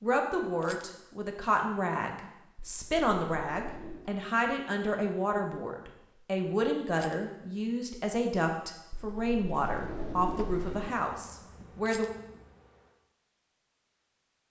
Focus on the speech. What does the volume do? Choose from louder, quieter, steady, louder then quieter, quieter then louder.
steady.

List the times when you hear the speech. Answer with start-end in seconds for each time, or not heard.
0.0-12.1.